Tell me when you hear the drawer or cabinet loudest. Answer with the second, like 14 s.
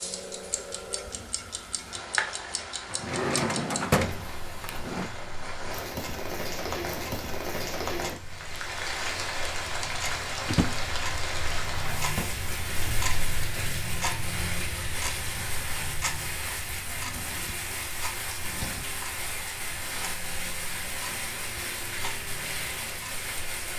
4 s.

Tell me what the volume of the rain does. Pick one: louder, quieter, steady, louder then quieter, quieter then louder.
louder.